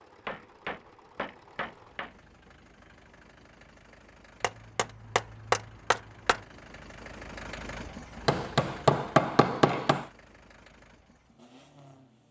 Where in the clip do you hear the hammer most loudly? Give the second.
9 s.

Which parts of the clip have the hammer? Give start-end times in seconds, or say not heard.
0.2-2.1, 4.4-6.4, 8.2-10.1.